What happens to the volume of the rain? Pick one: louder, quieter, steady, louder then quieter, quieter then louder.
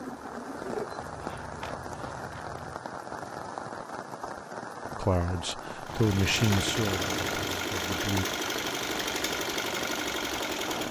steady.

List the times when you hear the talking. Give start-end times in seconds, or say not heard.
5.0-8.2.